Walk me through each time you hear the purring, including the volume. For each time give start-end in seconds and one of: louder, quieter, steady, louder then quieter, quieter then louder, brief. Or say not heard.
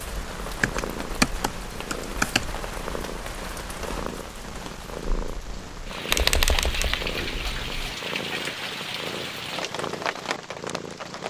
0.0-11.2 steady.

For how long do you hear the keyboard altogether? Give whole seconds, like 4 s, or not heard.
4 s.